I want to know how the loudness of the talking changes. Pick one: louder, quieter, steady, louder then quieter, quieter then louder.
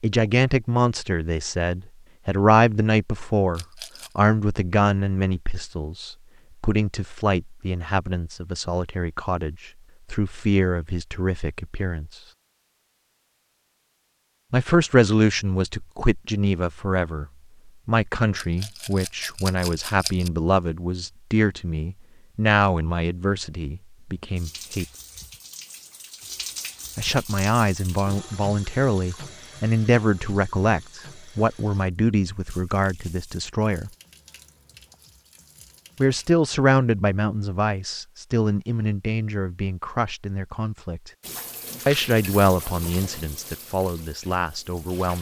steady.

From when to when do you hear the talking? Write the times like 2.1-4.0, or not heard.
0.0-12.1, 14.5-24.9, 26.9-33.9, 36.0-41.1, 41.9-45.1.